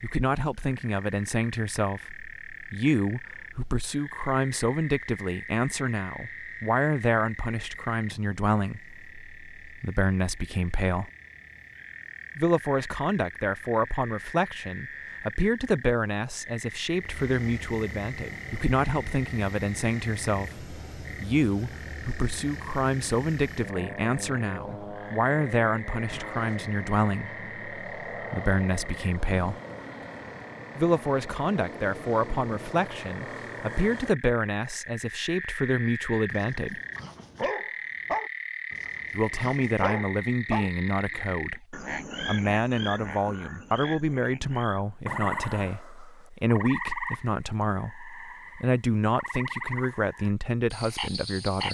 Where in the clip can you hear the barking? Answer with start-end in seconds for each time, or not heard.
36.3-41.4.